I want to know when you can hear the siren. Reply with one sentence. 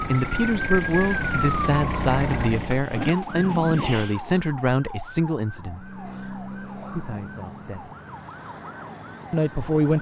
The siren can be heard from 0.1 to 9.9 s.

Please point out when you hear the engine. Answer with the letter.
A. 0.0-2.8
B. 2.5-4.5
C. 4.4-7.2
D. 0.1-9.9
A.